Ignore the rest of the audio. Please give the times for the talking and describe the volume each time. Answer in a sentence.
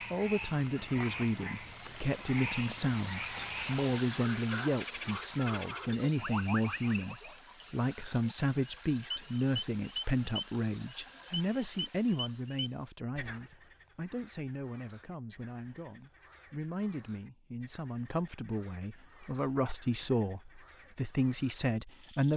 You can hear the talking from 0.1 to 22.3 s, getting quieter then louder.